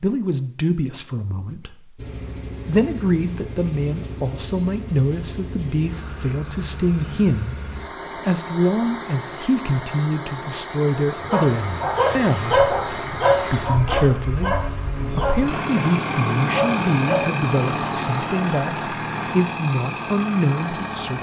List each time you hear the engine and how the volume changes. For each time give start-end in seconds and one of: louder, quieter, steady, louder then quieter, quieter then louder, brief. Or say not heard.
1.9-21.1 louder.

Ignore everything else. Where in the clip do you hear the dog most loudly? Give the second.
13 s.